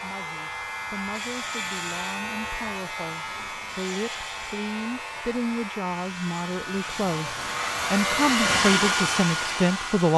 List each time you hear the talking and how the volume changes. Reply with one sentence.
The talking can be heard from 0.0 to 10.1 s, getting louder.